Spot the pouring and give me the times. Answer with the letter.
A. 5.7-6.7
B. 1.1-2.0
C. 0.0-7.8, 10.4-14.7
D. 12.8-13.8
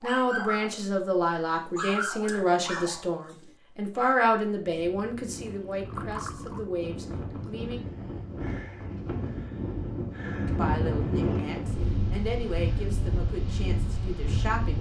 A.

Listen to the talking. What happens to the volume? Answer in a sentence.
The volume of the talking goes down.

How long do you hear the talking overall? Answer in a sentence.
The talking can be heard for 12 seconds in total.